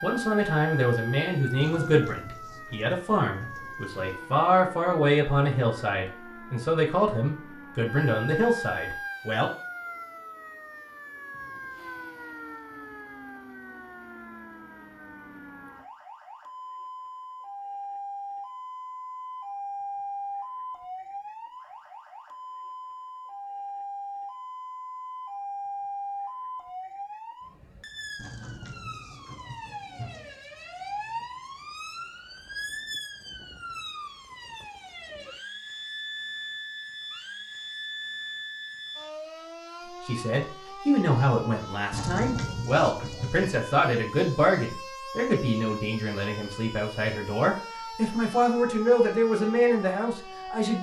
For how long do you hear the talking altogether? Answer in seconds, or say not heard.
20 s.